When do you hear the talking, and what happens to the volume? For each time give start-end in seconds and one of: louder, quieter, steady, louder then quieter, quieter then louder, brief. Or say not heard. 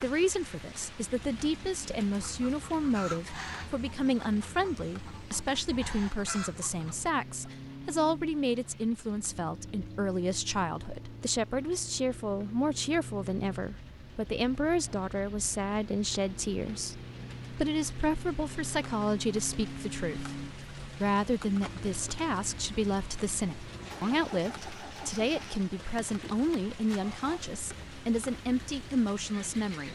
0.0-29.9 steady.